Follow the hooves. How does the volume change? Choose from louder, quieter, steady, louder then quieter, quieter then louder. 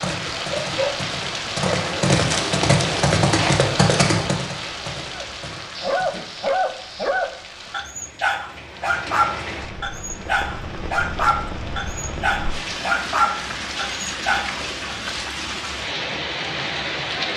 louder then quieter.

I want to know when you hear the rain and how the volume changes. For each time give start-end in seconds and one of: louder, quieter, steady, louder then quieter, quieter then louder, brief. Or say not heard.
0.0-17.3 quieter then louder.